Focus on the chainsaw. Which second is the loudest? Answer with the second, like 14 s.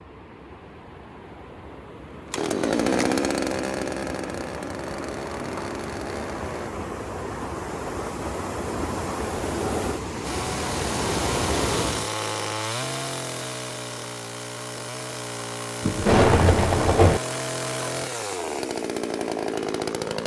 3 s.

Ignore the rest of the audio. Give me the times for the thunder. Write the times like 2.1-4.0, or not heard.
15.8-17.2.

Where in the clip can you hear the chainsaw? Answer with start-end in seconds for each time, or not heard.
2.2-6.7, 10.2-20.2.